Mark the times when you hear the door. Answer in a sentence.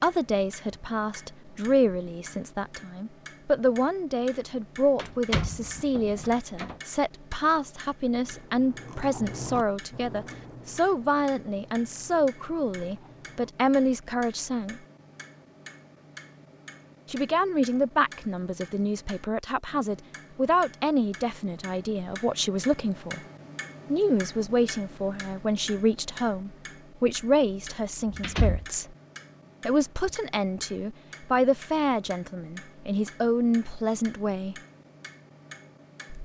You can hear the door from 5.0 to 6.8 s and from 28.1 to 28.6 s.